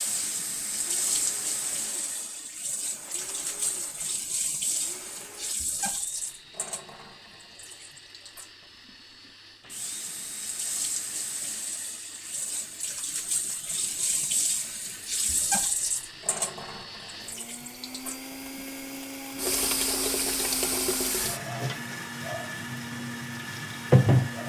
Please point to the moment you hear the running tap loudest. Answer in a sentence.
The volume of the running tap peaks at 24 seconds.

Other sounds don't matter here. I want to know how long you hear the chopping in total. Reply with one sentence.
The chopping can't be heard in this clip.